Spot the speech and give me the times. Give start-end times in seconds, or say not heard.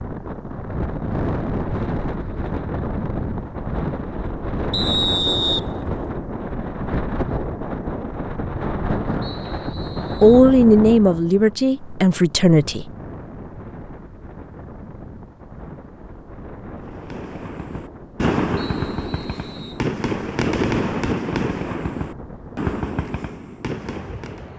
10.2-12.9.